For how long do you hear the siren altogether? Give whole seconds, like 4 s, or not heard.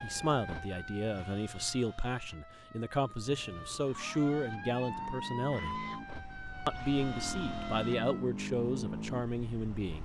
8 s.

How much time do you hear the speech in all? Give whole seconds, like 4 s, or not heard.
9 s.